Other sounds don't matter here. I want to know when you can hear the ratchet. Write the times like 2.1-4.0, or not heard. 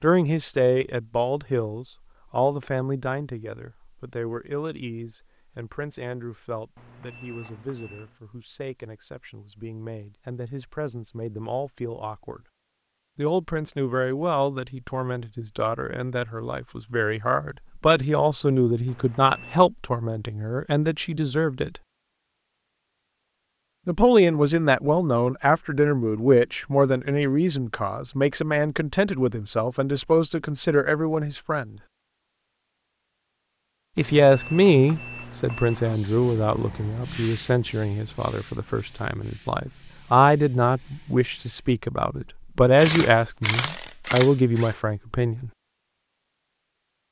42.8-44.8.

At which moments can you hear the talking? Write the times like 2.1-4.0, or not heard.
0.0-12.4, 13.2-21.8, 23.9-31.8, 34.0-45.5.